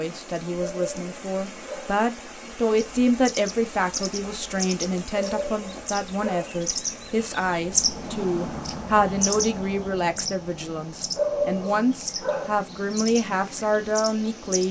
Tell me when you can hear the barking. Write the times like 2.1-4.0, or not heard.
0.6-2.0, 5.1-6.6, 11.2-12.7.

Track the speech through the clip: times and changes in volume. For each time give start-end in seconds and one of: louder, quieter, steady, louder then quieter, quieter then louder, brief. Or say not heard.
0.0-14.6 steady.